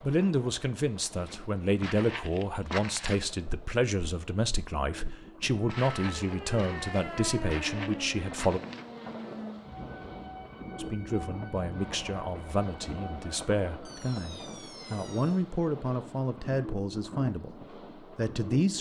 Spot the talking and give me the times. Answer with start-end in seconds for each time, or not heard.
0.0-8.6, 10.8-18.7.